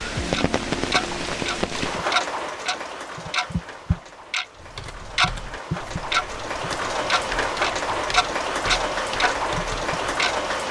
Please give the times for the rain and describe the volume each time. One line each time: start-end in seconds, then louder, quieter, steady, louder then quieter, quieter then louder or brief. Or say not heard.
0.0-10.6 quieter then louder.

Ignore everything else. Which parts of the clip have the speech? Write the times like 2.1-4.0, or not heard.
not heard.